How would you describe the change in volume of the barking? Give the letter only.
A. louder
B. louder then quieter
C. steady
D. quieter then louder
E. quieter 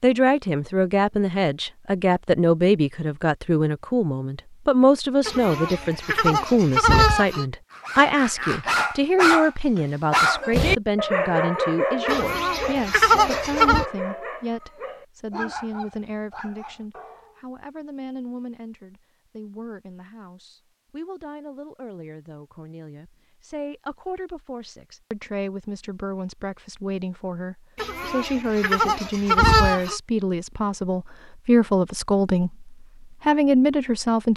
E.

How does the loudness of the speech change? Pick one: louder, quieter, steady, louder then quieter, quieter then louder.
quieter then louder.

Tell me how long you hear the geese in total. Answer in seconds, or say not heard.
6 s.